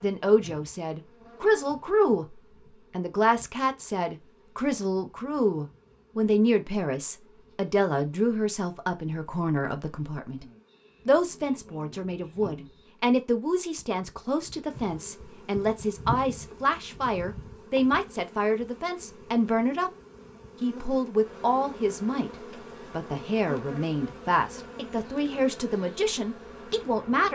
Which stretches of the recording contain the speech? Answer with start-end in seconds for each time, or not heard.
0.0-10.4, 11.1-19.9, 20.6-22.3, 22.9-27.3.